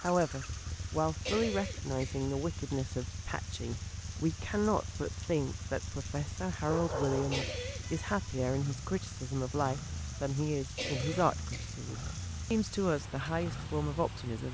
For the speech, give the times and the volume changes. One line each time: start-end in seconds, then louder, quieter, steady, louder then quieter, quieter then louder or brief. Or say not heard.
0.0-14.4 steady.